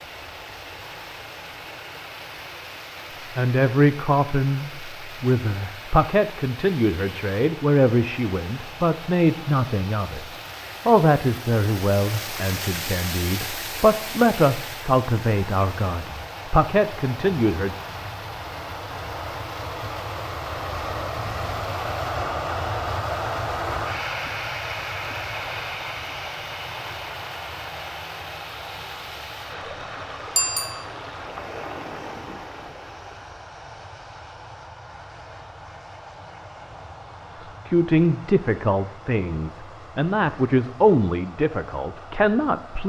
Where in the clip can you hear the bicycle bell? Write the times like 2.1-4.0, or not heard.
30.4-30.9.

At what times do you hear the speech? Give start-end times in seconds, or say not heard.
3.4-17.8, 37.4-42.8.